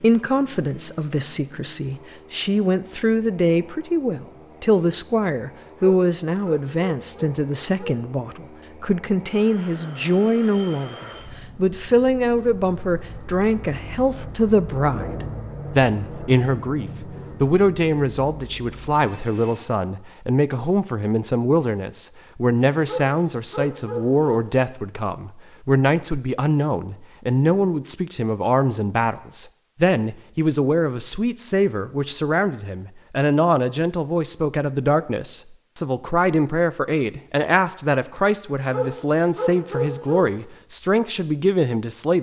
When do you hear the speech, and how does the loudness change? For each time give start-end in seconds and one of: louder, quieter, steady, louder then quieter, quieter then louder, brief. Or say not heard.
0.0-42.1 steady.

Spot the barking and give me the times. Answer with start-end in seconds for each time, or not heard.
5.8-8.0, 22.9-24.4, 38.7-40.3.